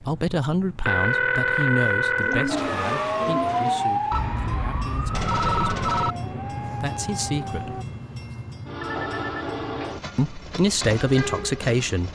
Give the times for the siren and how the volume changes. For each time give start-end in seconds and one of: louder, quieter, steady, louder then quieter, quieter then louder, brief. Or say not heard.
2.5-7.8 quieter.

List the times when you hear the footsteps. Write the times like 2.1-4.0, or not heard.
not heard.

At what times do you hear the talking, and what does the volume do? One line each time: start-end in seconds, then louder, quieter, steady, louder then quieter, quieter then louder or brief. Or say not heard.
0.0-7.8 quieter then louder
10.2-12.0 brief.